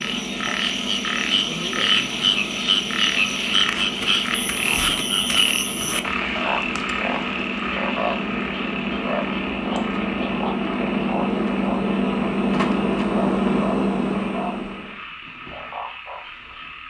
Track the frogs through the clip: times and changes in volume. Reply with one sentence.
The frogs can be heard from 0.0 to 16.8 s, getting quieter.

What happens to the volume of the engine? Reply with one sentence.
The volume of the engine goes up.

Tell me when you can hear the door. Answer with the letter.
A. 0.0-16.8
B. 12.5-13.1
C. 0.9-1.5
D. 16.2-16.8
B.